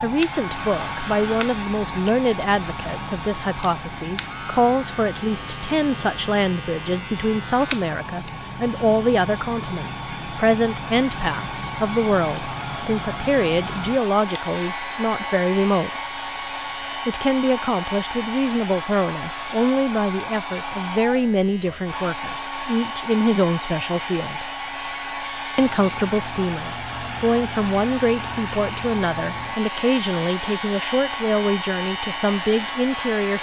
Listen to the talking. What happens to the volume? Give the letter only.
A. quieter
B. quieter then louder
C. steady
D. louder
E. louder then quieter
C.